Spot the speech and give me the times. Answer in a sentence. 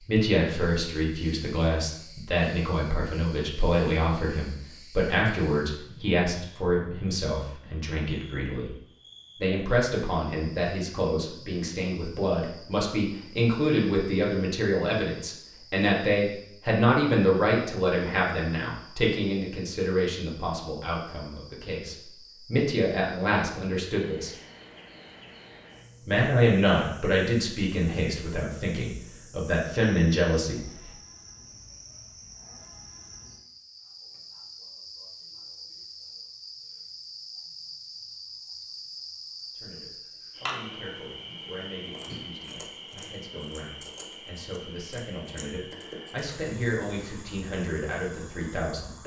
You can hear the speech from 0.1 to 8.7 s, from 9.4 to 24.4 s, from 26.1 to 30.6 s and from 39.5 to 49.0 s.